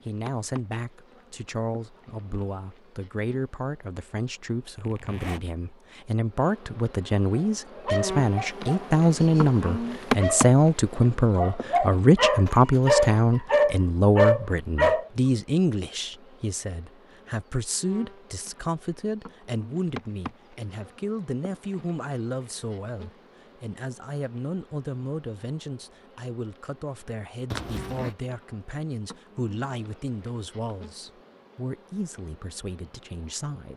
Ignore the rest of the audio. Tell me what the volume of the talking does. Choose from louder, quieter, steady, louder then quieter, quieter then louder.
louder then quieter.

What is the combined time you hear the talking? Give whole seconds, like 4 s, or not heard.
34 s.